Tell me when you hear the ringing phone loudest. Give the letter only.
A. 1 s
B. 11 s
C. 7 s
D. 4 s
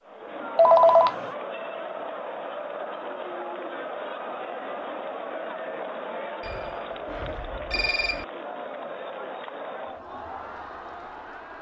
A.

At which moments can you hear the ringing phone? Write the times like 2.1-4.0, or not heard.
0.6-1.1, 6.4-8.2.